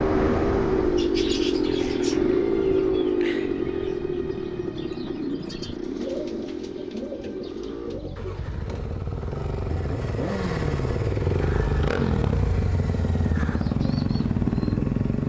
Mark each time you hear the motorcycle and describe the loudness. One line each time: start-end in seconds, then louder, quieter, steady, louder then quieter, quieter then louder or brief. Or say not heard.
0.0-15.2 quieter then louder.